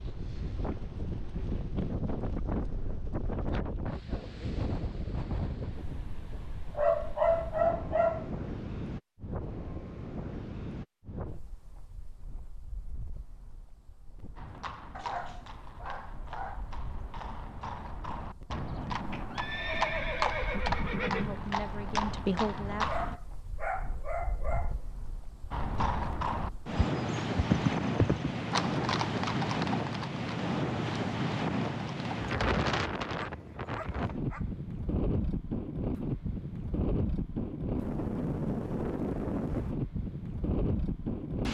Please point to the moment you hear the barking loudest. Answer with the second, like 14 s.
7 s.